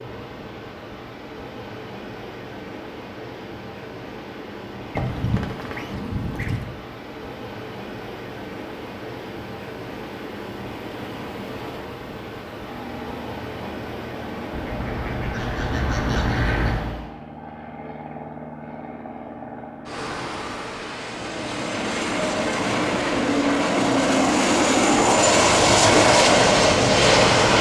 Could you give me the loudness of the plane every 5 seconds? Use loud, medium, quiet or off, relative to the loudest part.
off, off, quiet, quiet, medium, loud.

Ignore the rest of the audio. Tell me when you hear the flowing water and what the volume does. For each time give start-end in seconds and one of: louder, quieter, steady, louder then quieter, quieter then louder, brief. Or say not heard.
0.0-17.1 steady.